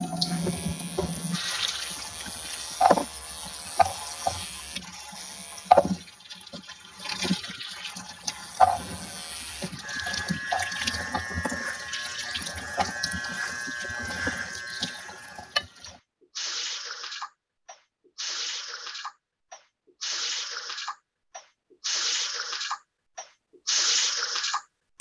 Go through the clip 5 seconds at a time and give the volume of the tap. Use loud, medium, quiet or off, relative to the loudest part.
loud, loud, medium, medium, loud.